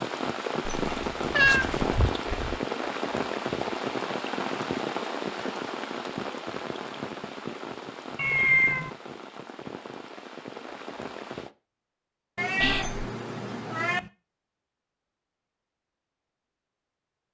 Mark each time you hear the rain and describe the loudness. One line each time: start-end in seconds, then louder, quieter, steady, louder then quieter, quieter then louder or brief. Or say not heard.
0.0-11.5 quieter.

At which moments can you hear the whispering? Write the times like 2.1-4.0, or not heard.
1.4-2.6, 12.6-13.1.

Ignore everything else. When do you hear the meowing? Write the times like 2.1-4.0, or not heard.
0.7-1.9, 8.2-8.9, 12.3-14.1.